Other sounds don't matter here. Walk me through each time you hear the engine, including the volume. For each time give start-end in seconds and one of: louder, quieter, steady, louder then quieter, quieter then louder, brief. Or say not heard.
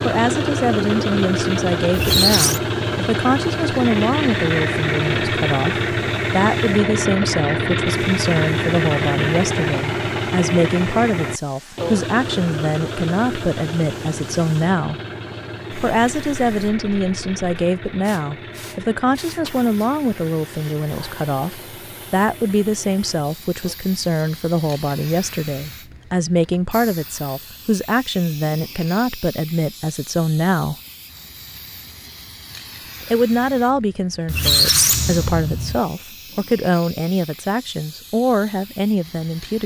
0.0-23.8 quieter.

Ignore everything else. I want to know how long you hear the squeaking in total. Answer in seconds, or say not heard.
2 s.